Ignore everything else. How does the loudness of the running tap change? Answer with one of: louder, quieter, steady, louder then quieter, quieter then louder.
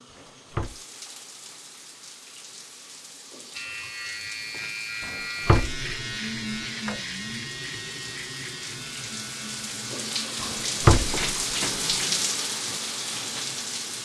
louder.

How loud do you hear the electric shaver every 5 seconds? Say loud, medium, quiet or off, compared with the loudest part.
loud, loud, medium.